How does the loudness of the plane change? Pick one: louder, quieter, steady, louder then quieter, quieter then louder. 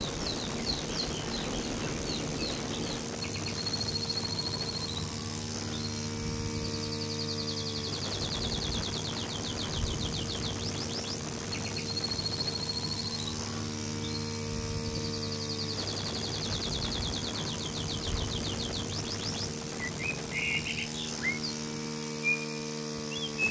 steady.